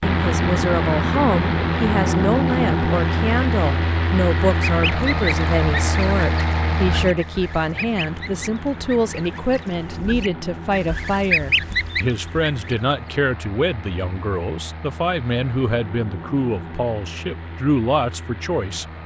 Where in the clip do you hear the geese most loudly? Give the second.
11 s.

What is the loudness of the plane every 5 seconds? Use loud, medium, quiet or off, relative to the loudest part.
loud, medium, quiet, quiet.